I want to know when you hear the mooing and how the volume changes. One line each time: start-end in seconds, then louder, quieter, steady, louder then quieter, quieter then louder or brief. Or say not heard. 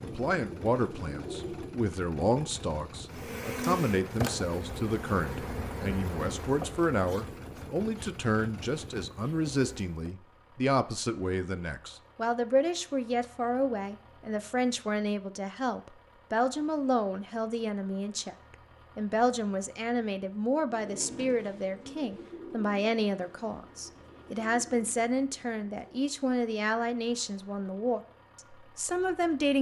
not heard.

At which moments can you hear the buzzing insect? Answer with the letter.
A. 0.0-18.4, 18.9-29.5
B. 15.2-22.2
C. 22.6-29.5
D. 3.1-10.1
D.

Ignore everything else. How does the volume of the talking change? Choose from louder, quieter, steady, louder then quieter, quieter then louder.
steady.